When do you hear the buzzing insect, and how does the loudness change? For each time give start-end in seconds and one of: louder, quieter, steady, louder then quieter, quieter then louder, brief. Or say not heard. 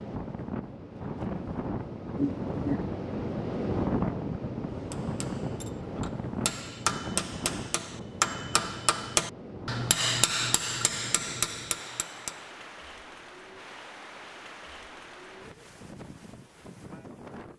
not heard.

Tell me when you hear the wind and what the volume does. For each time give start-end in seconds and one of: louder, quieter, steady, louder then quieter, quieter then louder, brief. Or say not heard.
0.0-17.5 quieter.